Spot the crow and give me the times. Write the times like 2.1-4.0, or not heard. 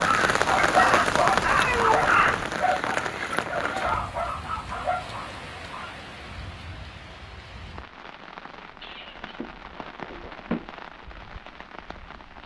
0.0-2.5.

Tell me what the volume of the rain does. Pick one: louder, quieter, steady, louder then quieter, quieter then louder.
quieter.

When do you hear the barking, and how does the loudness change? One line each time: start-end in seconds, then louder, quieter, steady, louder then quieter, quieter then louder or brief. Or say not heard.
0.5-6.0 quieter.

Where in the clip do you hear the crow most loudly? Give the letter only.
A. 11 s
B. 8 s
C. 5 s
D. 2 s
D.